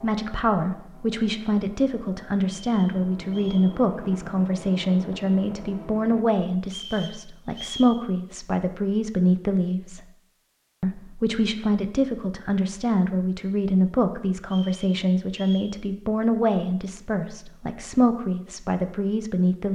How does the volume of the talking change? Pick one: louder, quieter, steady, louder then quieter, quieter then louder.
steady.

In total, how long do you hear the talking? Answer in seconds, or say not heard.
19 s.